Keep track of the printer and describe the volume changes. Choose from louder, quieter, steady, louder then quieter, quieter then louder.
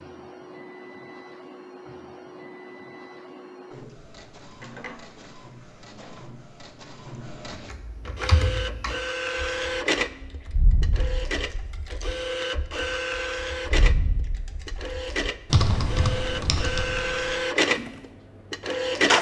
louder.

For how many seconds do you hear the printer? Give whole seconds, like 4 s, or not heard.
19 s.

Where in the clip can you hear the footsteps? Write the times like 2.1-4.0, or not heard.
not heard.